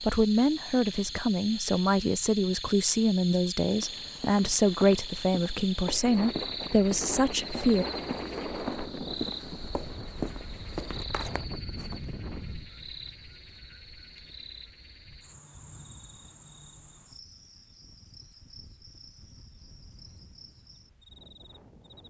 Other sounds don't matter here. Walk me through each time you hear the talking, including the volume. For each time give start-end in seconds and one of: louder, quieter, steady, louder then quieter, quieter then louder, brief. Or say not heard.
0.0-7.8 steady.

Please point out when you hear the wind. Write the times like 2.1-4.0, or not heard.
6.0-22.0.